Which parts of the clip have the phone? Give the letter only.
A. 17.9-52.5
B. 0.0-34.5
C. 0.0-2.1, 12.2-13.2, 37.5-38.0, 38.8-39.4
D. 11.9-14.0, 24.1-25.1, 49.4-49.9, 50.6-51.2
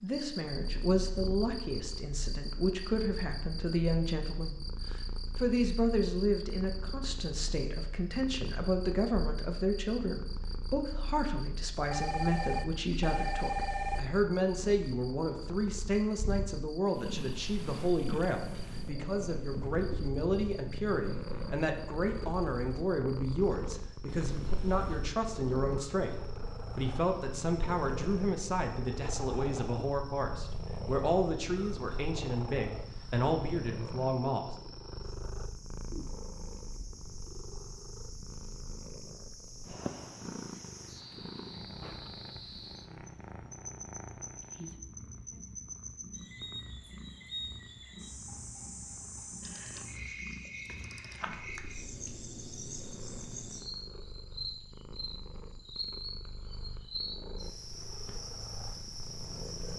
D.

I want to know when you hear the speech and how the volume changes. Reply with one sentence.
The speech can be heard from 0.0 to 34.5 s, at a steady volume.